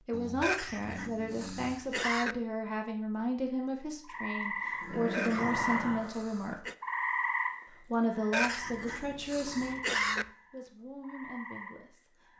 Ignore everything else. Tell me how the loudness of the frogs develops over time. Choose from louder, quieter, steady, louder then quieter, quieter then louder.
quieter.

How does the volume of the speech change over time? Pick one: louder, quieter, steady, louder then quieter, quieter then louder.
quieter.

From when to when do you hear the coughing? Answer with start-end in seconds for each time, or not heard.
0.4-2.4, 5.1-6.8, 8.3-10.2.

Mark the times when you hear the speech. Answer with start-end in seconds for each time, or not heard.
0.1-6.7, 7.7-12.3.